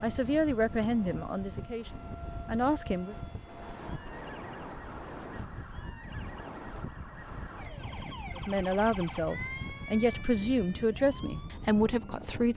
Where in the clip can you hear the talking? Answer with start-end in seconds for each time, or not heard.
0.0-3.1, 8.3-12.5.